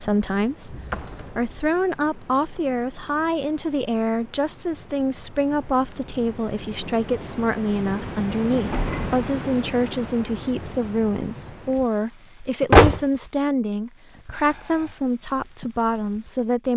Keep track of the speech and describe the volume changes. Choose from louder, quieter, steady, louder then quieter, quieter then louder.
steady.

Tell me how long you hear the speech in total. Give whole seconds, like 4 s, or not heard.
17 s.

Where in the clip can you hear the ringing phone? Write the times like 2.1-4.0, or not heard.
not heard.